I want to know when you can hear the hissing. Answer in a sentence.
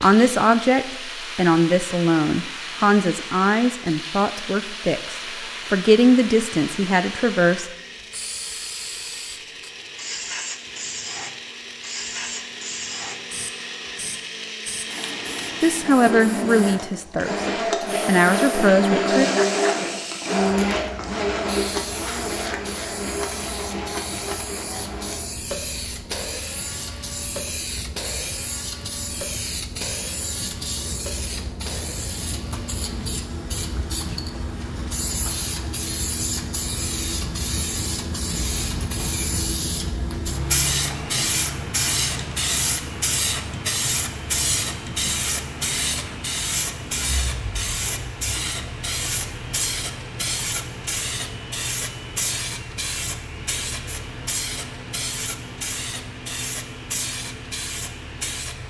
You can hear the hissing from 0.0 to 58.6 s.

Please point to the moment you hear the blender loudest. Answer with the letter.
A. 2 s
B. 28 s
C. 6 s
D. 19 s
D.